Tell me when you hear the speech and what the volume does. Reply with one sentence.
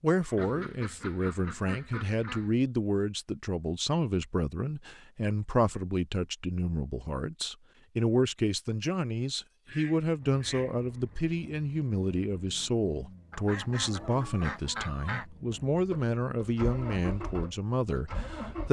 You can hear the speech from 0.0 to 18.6 s, at a steady volume.